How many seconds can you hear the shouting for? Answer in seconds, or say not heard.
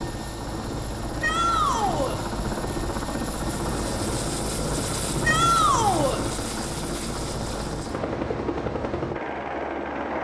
2 s.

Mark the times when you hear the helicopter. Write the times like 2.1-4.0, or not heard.
0.0-10.1.